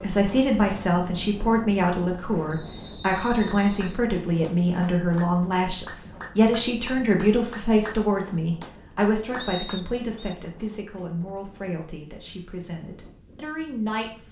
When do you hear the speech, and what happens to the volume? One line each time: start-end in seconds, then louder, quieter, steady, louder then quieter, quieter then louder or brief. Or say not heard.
0.0-14.2 quieter.